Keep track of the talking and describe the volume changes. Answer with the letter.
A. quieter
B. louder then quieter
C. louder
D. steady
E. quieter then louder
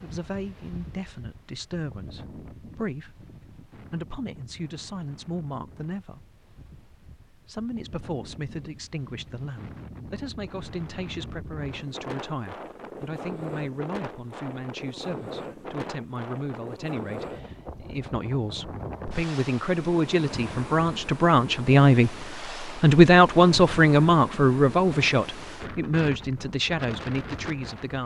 C.